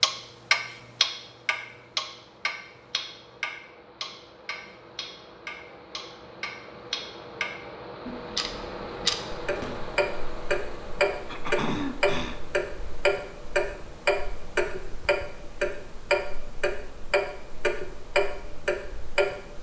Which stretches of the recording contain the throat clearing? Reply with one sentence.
You can hear the throat clearing from 11.2 to 12.4 s.